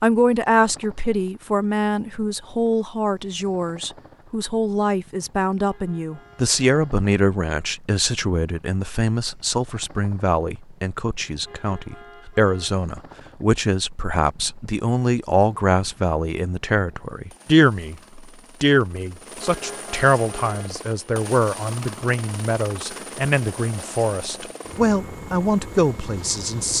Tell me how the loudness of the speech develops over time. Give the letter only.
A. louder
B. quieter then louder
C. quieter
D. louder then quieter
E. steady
E.